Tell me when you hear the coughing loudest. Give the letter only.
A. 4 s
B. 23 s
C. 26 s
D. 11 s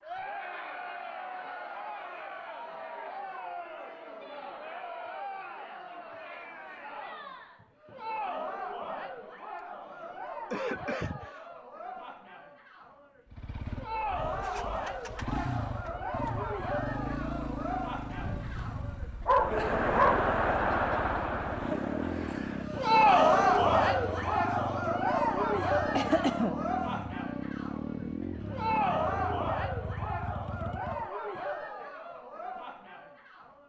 C.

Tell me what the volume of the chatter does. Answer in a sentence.
The volume of the chatter goes up, then down.